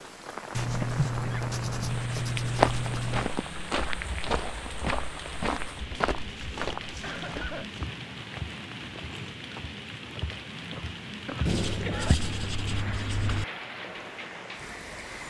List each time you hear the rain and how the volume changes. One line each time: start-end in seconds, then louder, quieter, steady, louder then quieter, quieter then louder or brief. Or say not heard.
0.0-15.2 steady.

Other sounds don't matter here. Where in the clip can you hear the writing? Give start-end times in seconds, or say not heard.
0.5-3.3, 5.7-7.8, 11.4-13.4.